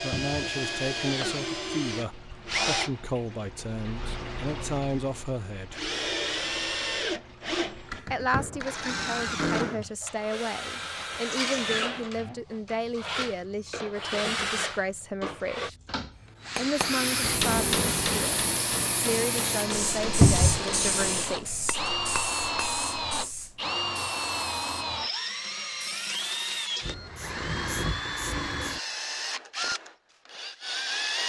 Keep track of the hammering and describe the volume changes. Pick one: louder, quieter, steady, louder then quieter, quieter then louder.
quieter.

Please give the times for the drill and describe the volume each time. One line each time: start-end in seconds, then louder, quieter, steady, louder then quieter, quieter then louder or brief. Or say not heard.
0.0-31.2 steady.